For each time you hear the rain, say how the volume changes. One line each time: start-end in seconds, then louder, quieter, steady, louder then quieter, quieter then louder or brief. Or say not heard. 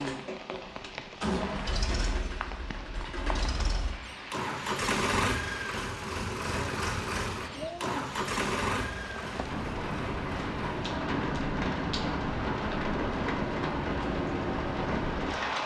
0.0-15.6 louder.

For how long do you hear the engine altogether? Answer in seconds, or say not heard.
15 s.